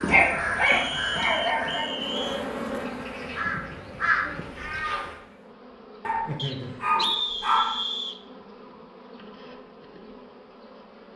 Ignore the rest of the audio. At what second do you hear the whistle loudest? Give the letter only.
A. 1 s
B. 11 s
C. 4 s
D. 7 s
D.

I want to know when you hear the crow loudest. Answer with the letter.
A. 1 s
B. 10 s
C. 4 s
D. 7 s
C.